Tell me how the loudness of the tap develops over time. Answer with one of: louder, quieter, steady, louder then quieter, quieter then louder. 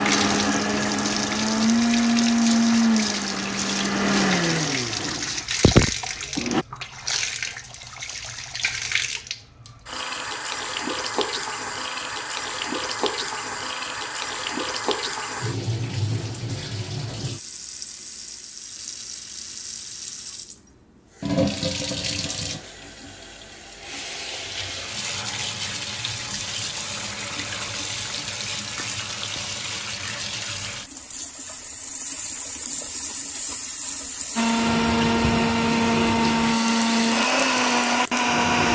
steady.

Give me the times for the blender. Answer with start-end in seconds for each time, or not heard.
0.0-6.7, 34.4-38.6.